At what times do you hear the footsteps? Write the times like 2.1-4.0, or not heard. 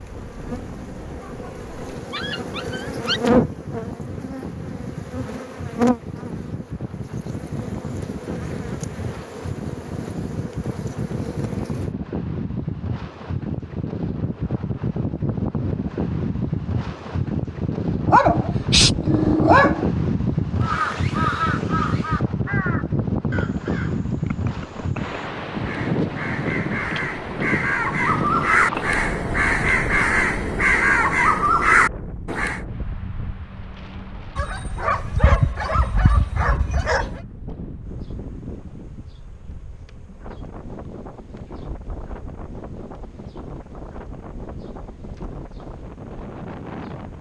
not heard.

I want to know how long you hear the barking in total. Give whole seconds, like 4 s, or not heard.
7 s.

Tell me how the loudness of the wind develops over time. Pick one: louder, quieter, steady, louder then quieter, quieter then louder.
louder then quieter.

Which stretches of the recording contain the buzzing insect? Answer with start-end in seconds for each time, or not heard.
0.0-11.9, 37.8-47.1.